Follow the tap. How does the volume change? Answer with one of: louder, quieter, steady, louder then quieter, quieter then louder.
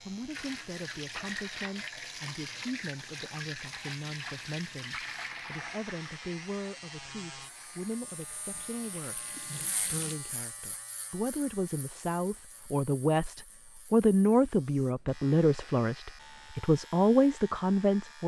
quieter.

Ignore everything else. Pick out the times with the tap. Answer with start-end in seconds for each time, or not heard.
0.0-10.2.